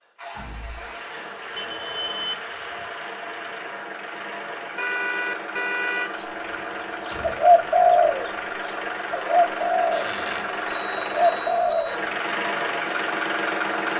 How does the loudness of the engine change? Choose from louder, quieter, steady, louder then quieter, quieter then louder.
louder.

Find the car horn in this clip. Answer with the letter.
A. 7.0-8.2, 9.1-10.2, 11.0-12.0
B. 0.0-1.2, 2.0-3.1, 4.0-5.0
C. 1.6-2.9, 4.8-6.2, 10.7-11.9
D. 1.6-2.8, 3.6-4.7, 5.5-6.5
C.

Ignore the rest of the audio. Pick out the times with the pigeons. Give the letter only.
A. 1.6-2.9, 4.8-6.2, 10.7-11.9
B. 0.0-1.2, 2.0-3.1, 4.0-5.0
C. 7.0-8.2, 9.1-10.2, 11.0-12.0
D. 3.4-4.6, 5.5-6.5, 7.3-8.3
C.